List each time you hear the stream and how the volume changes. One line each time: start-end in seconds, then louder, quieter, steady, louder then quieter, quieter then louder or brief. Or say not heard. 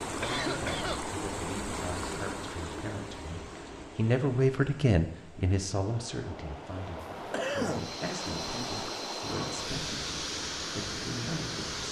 0.0-11.8 quieter then louder.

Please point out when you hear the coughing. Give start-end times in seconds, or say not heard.
0.2-1.0, 7.0-7.9.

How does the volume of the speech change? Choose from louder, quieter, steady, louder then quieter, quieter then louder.
louder then quieter.